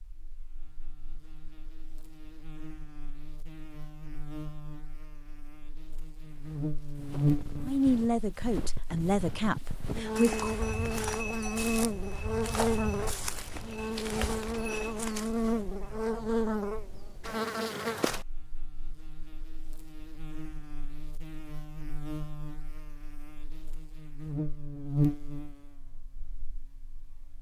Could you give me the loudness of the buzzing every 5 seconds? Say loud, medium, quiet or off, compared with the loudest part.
quiet, loud, loud, loud, medium, loud.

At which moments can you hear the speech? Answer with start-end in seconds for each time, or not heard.
7.7-10.6.